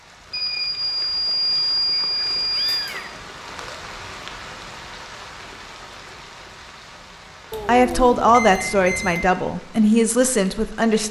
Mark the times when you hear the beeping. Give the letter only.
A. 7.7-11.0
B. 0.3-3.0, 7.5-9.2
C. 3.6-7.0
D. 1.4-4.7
B.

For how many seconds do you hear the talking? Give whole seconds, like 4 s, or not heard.
3 s.